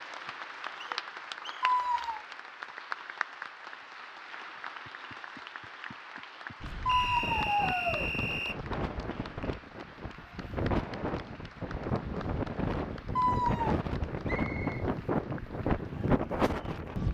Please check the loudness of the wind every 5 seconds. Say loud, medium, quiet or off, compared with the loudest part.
off, medium, loud, loud.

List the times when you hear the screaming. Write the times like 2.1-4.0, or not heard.
1.6-2.2, 6.8-8.1, 13.2-13.8.